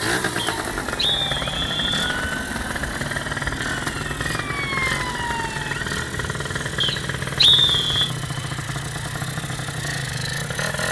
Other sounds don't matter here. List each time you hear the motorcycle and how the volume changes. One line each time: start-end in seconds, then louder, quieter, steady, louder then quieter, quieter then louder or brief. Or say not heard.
0.0-10.8 steady.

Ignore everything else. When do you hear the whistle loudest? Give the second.
8 s.